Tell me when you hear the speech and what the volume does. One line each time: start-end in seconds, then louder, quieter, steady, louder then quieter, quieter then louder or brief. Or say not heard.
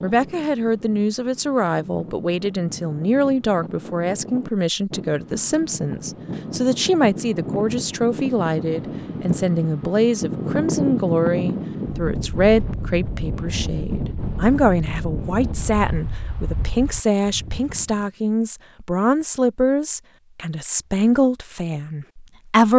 0.0-22.7 steady.